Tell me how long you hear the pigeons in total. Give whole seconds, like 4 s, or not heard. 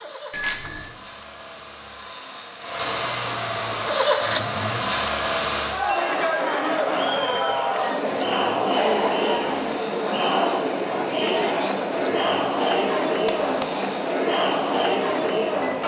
not heard.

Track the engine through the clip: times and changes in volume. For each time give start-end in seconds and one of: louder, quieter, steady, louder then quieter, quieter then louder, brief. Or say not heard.
0.0-15.8 louder then quieter.